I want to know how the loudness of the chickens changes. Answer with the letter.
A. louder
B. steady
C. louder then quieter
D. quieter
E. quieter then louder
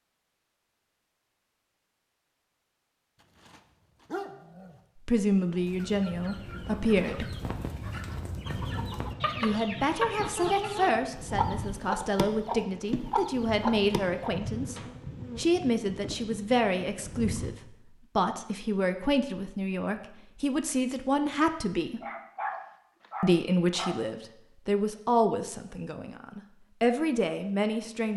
A.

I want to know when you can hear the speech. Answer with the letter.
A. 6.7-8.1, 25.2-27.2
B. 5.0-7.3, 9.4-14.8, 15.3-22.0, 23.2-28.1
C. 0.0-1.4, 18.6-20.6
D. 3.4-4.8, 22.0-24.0
B.